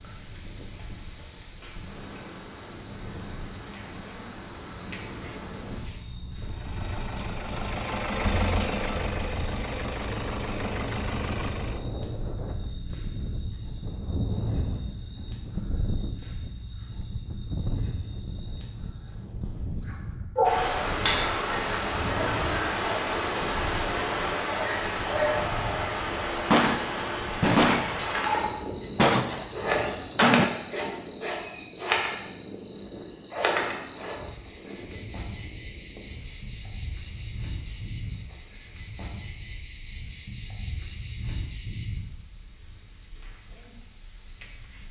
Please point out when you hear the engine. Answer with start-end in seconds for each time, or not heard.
6.4-11.9.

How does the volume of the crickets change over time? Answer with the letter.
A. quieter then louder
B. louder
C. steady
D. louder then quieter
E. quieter
E.